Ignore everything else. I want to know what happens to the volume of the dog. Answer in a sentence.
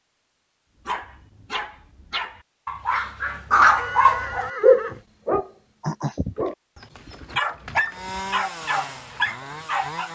The volume of the dog goes up, then down.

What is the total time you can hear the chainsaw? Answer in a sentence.
The chainsaw can be heard for 2 seconds in total.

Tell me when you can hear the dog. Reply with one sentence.
You can hear the dog from 0.8 to 10.0 s.